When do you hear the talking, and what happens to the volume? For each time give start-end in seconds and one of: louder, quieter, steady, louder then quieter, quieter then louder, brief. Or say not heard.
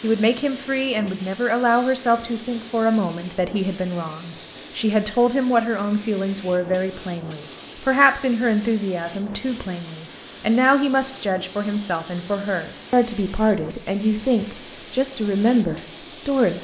0.0-16.5 steady.